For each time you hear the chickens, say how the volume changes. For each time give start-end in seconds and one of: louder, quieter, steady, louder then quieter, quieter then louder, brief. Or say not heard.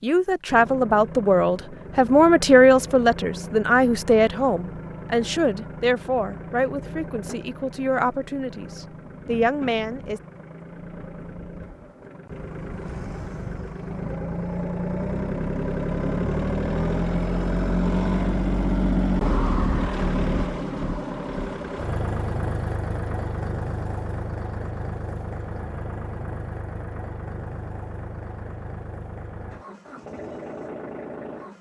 not heard.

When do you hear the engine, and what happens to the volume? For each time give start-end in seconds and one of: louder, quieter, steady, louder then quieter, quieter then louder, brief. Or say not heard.
0.0-31.5 louder then quieter.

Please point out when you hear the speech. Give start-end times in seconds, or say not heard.
0.0-10.2.